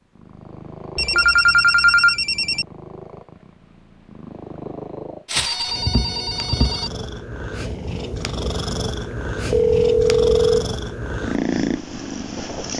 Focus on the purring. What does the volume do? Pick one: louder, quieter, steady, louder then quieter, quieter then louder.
louder.